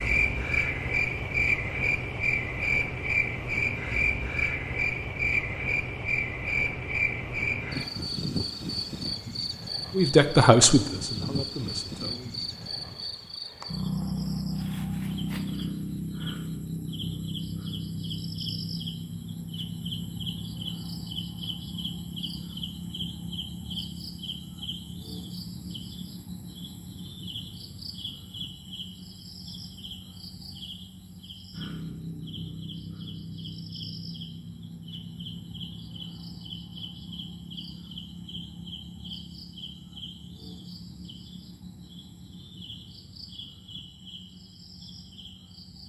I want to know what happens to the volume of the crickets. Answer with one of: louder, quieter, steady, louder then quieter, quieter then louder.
quieter.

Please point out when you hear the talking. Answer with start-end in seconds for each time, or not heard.
9.9-12.3.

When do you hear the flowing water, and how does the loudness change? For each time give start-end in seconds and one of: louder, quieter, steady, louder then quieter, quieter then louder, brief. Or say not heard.
not heard.